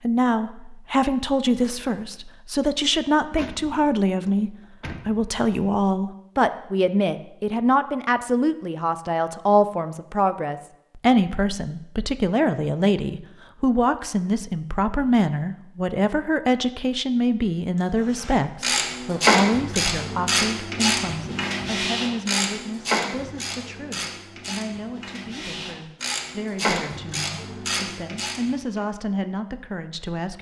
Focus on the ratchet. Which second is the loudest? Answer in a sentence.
The loudest moment of the ratchet is at 19 seconds.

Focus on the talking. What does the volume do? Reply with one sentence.
The loudness of the talking goes down.